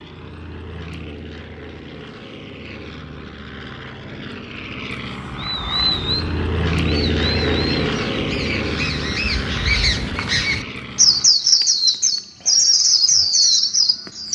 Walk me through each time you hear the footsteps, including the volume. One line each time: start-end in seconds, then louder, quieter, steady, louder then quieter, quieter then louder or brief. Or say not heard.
not heard.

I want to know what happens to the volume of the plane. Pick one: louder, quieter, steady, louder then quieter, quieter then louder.
louder then quieter.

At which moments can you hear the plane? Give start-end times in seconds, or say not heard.
0.0-11.3.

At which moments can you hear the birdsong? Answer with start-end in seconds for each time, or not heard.
5.3-14.3.